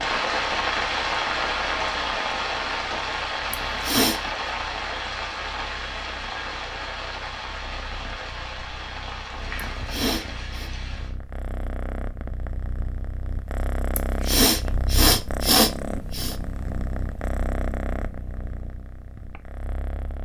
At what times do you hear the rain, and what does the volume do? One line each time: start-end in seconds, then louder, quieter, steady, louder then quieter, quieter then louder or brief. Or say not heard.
0.0-11.2 quieter.